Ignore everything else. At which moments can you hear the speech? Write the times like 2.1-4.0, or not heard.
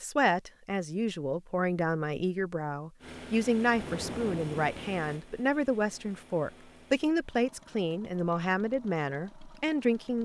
0.0-10.2.